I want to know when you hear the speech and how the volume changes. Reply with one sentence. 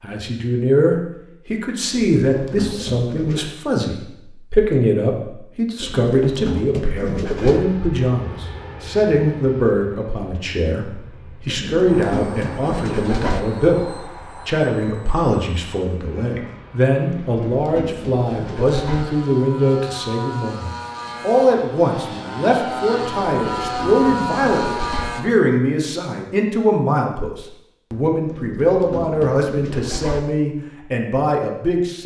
You can hear the speech from 0.0 to 32.0 s, at a steady volume.